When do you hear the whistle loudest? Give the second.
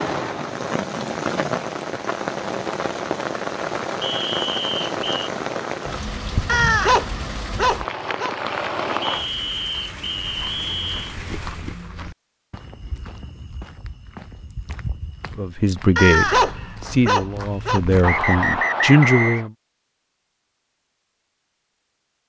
19 s.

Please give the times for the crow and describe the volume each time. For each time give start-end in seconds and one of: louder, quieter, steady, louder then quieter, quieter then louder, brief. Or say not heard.
not heard.